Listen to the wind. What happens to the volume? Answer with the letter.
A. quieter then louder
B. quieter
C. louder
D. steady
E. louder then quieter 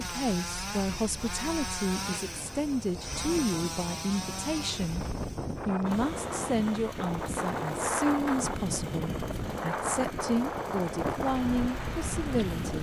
C.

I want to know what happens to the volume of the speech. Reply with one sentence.
The volume of the speech stays about the same.